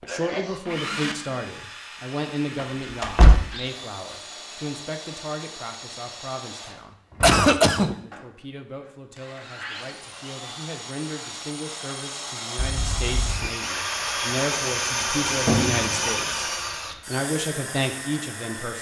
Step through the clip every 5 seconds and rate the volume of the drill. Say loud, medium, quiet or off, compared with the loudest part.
medium, medium, loud, loud.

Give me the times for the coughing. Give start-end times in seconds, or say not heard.
0.1-0.6, 7.2-8.0, 12.6-13.5.